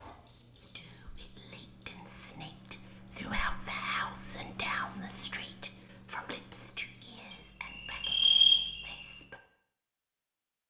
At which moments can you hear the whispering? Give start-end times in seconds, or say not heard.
0.6-9.4.